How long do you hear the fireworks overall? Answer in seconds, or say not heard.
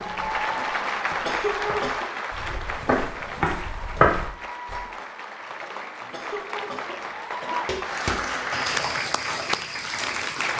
not heard.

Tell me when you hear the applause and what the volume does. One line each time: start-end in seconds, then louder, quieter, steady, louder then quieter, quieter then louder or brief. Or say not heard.
0.0-10.5 quieter then louder.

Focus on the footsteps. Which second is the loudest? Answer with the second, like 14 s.
4 s.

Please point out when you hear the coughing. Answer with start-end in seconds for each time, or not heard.
1.2-2.0, 6.1-7.8.